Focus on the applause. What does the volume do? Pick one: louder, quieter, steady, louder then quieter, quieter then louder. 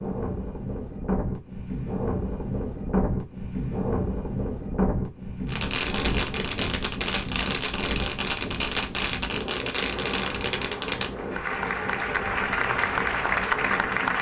louder.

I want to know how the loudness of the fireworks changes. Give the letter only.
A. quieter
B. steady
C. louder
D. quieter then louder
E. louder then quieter
B.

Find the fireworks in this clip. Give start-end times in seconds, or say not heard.
5.5-11.1.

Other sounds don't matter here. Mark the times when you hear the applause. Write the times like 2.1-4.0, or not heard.
9.9-14.1.